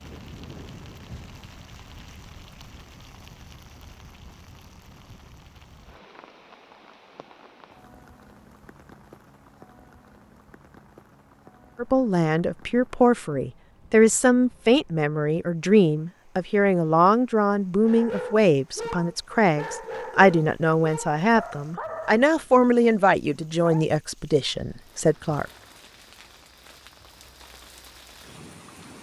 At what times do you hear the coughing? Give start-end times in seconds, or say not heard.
not heard.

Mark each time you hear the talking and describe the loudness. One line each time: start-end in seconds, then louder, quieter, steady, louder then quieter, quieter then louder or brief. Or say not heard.
11.8-25.4 steady.